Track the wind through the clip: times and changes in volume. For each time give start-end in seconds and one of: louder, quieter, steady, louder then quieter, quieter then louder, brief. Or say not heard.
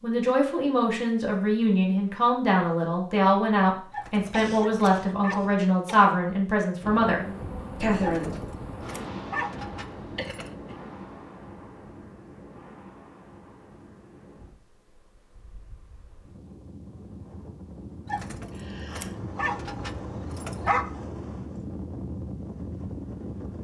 6.8-23.5 quieter then louder.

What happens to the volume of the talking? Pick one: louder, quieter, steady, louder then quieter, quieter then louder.
steady.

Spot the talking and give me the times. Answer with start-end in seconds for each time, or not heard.
0.0-8.4.